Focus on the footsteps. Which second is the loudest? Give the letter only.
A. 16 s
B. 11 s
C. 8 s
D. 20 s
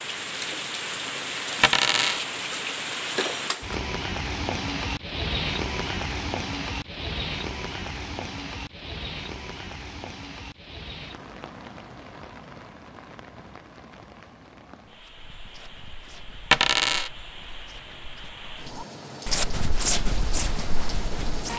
D.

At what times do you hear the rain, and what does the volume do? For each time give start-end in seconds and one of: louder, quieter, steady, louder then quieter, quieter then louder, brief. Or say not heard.
0.0-21.5 quieter then louder.